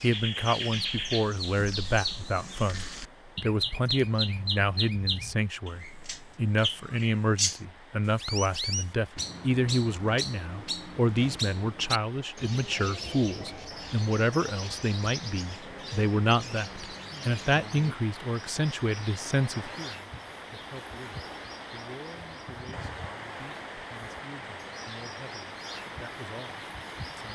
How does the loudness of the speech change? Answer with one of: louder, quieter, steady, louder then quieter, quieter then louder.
quieter.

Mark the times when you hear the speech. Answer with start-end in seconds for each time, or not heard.
0.0-27.3.